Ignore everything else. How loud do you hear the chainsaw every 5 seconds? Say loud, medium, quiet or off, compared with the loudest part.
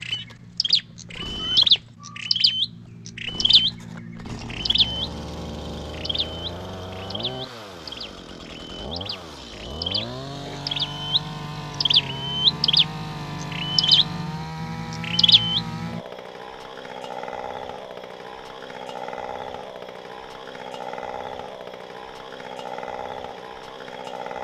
medium, loud, loud, loud, loud.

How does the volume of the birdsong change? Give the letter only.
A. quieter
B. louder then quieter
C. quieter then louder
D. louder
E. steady
C.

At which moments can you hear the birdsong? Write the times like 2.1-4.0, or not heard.
0.0-16.0.